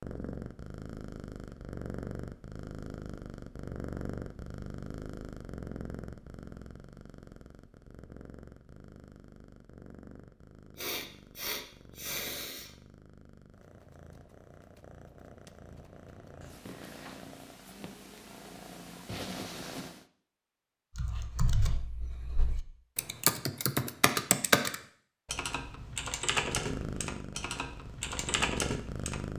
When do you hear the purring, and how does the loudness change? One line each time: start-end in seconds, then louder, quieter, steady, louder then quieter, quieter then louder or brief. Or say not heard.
0.0-20.1 quieter then louder
26.4-29.3 brief.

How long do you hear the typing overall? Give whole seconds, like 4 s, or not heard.
8 s.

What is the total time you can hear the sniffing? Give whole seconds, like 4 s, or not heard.
2 s.